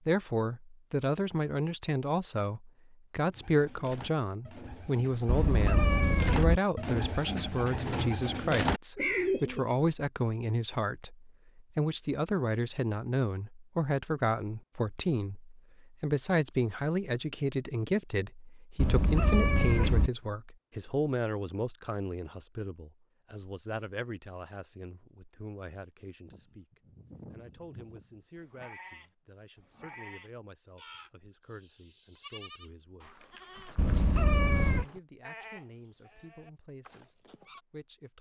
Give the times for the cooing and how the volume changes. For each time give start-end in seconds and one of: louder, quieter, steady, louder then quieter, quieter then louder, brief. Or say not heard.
3.3-9.7 louder.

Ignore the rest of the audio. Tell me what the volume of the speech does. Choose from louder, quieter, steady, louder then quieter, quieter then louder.
quieter.